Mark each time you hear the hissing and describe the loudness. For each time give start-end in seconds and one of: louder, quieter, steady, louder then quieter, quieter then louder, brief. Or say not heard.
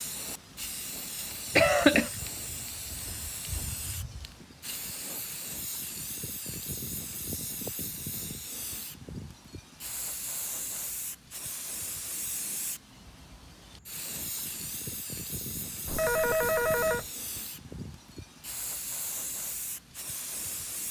0.0-20.8 steady.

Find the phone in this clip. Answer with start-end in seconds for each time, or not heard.
15.8-17.1.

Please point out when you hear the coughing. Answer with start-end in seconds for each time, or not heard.
1.6-2.1.